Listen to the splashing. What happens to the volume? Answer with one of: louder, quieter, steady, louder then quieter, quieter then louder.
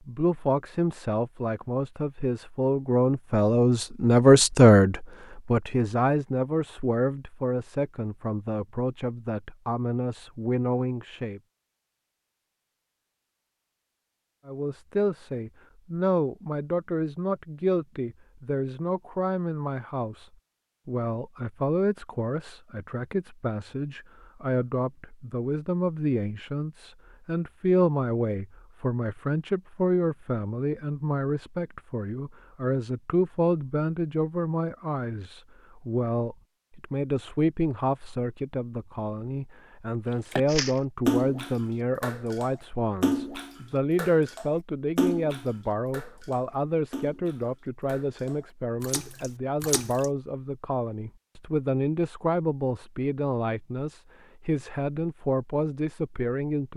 quieter.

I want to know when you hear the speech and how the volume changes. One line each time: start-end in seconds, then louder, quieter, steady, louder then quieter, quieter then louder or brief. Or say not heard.
0.1-11.4 louder then quieter
14.4-56.7 steady.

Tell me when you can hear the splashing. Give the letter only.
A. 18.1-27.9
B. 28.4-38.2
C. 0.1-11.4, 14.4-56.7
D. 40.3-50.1
D.